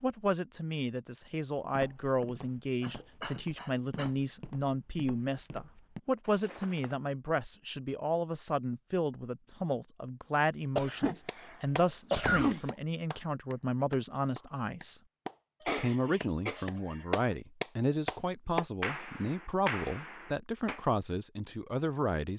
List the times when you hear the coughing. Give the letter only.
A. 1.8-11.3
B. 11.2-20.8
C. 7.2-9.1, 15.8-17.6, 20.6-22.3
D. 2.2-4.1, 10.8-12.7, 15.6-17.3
D.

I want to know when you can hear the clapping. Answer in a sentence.
You can hear the clapping from 11.2 to 20.8 s.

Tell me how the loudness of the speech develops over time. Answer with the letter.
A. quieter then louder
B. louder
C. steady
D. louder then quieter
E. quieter
C.